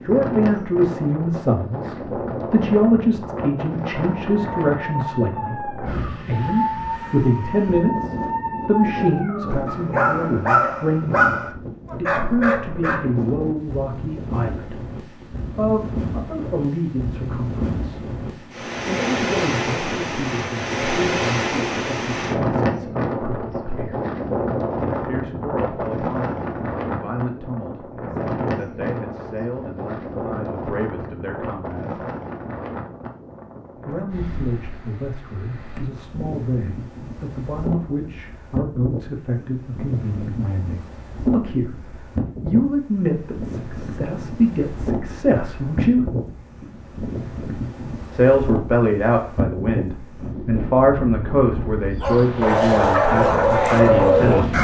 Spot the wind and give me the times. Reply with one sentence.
The wind can be heard from 0.0 to 54.5 s.